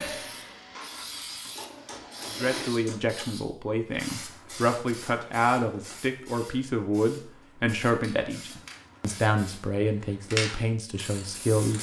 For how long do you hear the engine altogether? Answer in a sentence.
The engine can be heard for 3 seconds in total.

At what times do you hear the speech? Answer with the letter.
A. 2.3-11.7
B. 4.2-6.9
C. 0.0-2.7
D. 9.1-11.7
A.